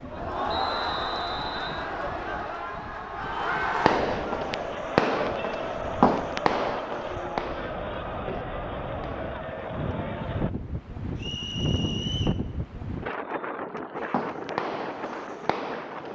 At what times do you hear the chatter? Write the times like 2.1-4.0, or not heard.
0.0-10.5.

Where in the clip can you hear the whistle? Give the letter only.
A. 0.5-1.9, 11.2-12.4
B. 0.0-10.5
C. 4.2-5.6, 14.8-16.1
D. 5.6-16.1
A.